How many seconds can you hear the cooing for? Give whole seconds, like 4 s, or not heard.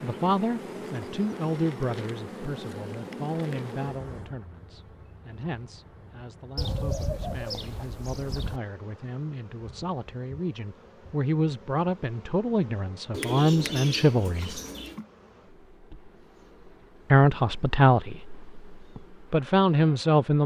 4 s.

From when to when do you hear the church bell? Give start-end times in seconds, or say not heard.
not heard.